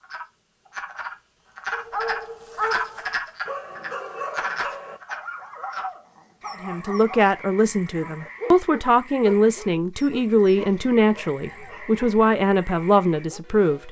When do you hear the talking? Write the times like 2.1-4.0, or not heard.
6.6-13.8.